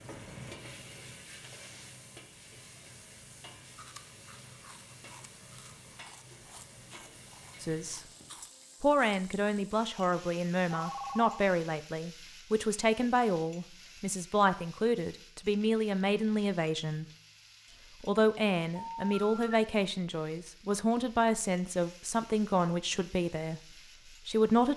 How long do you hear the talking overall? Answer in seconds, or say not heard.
15 s.